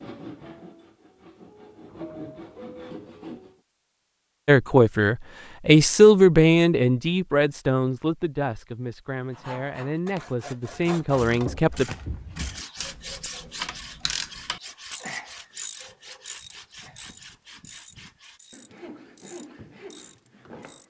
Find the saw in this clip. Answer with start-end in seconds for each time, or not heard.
0.0-3.6, 9.3-20.8.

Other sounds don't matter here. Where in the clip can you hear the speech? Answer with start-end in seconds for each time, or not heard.
4.5-11.9.